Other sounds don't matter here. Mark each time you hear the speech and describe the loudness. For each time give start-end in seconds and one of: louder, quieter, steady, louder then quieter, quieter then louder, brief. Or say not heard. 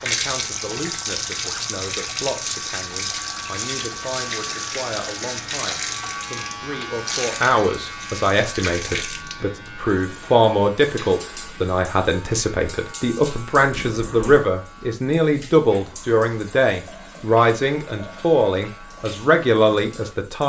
0.0-20.4 louder.